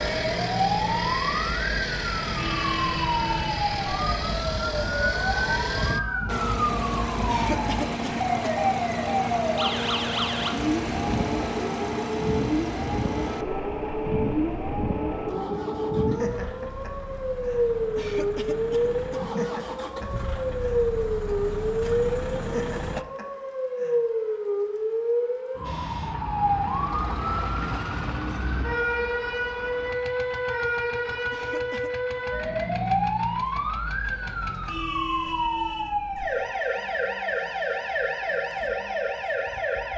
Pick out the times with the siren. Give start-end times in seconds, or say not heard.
0.0-39.9.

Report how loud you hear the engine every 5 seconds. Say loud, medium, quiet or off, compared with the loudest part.
loud, loud, loud, medium, medium, medium, quiet, off.